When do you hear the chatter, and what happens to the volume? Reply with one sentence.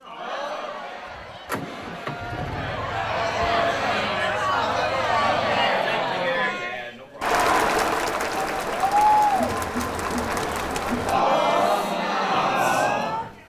The chatter can be heard from 0.0 to 13.4 s, getting louder.